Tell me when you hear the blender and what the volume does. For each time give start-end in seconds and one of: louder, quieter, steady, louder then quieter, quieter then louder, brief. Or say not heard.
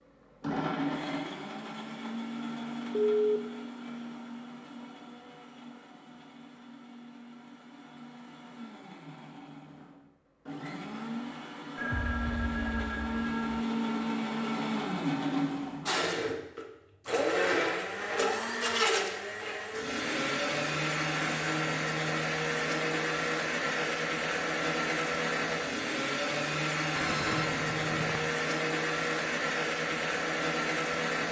0.3-31.2 louder.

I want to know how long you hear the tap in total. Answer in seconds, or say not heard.
not heard.